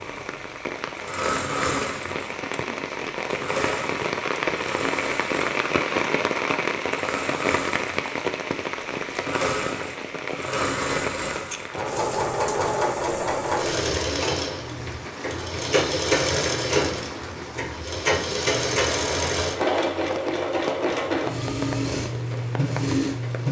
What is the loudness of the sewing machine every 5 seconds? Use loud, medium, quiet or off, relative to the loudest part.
medium, medium, loud, loud, loud.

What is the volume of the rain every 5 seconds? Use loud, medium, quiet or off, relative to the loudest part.
loud, loud, medium, medium, medium.